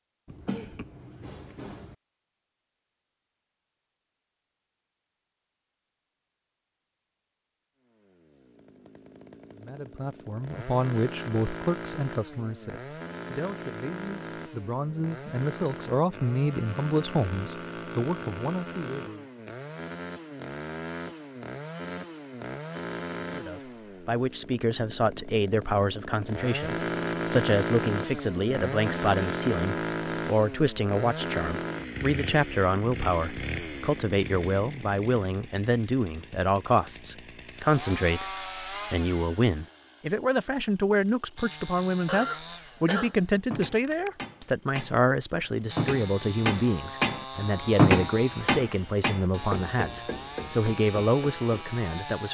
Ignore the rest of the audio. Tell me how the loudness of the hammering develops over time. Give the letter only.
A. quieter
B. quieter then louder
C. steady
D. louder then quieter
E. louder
D.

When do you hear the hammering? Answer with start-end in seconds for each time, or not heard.
43.0-51.6.